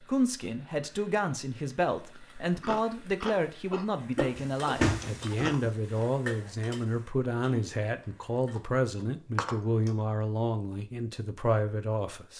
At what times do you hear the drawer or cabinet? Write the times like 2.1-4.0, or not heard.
4.3-5.7.